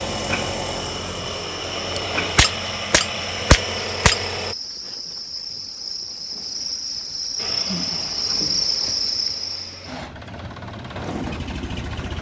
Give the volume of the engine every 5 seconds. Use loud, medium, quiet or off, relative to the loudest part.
loud, medium, loud.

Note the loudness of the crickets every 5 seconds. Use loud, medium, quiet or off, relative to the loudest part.
medium, loud, off.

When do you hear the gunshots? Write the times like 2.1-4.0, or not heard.
1.9-4.2.